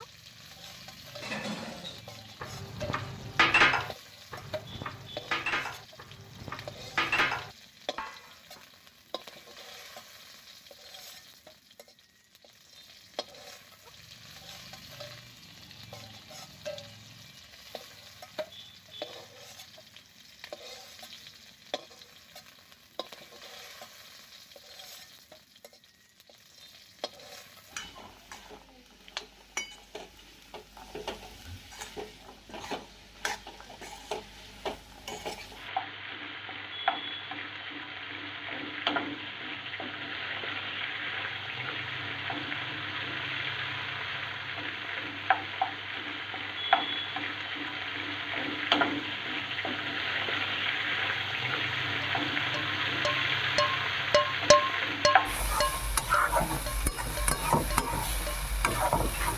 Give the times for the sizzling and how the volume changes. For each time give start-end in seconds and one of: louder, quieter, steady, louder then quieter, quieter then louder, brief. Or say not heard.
0.0-59.3 louder.